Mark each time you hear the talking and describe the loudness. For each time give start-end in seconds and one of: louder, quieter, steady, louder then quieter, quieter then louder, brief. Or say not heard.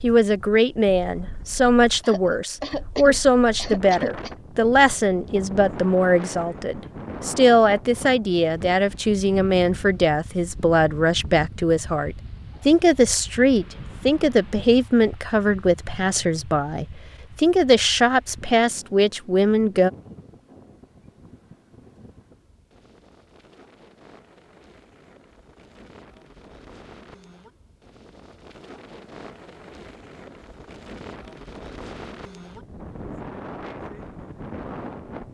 0.0-19.9 steady.